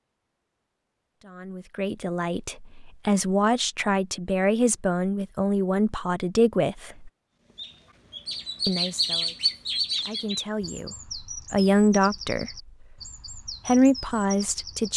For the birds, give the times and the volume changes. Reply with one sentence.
You can hear the birds from 7.5 to 14.9 s, getting quieter.